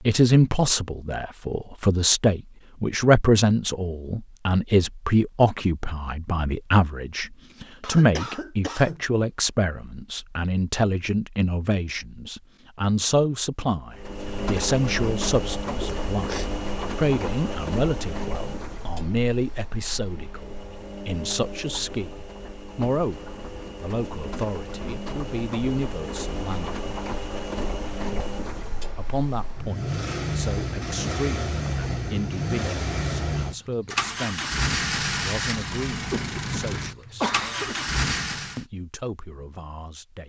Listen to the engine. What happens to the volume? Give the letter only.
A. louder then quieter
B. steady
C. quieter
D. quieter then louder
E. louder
D.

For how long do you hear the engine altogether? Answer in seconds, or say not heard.
25 s.